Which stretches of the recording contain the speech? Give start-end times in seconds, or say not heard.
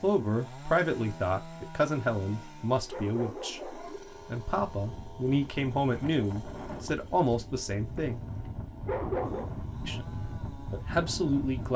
0.0-8.2, 9.8-11.7.